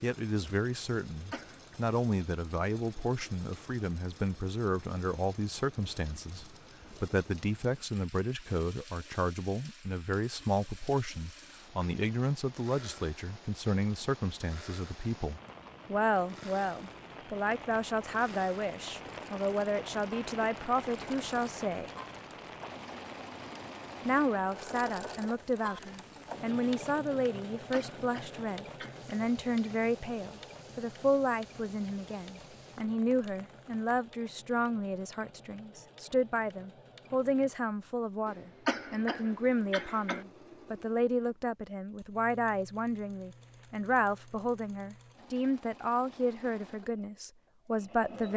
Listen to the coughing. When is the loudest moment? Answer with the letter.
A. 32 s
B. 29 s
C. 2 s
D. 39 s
D.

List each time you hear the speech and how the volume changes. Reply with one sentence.
You can hear the speech from 0.0 to 21.9 s, at a steady volume; and from 24.1 to 48.3 s, at a steady volume.